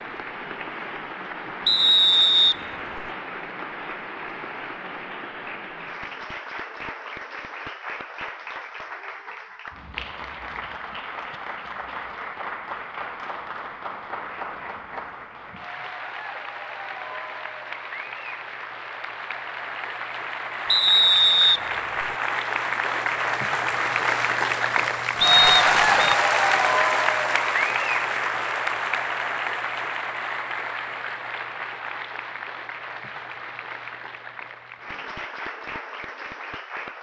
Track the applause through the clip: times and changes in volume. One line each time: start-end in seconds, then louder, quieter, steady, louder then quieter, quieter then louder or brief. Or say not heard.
0.0-36.9 louder then quieter.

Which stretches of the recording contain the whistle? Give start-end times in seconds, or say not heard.
1.6-3.0, 20.7-22.1, 25.2-26.1.